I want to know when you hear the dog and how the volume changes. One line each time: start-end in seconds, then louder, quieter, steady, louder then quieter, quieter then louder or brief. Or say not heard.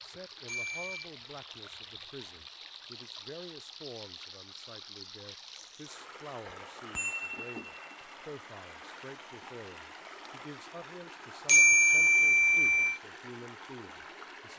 not heard.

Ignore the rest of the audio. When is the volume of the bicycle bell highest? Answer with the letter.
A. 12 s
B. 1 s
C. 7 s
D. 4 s
A.